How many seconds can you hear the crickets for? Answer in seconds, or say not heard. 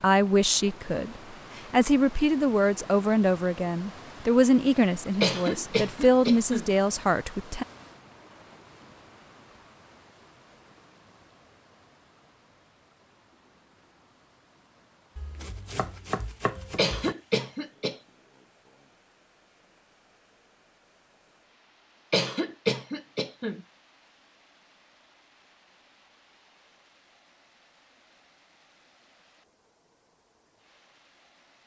not heard.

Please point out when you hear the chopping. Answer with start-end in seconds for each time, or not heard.
15.2-17.1.